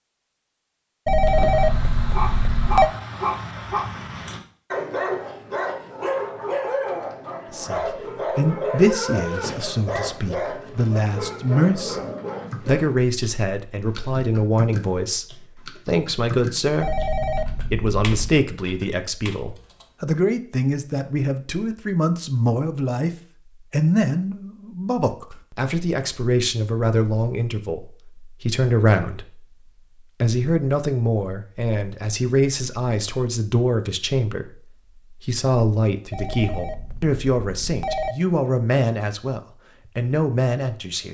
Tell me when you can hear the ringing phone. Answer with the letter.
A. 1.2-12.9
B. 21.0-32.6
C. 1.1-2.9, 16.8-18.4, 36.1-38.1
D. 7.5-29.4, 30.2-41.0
C.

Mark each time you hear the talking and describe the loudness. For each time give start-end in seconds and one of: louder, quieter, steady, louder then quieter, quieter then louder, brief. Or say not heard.
7.5-29.4 steady
30.2-41.0 steady.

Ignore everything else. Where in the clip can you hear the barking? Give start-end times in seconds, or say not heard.
1.2-12.9.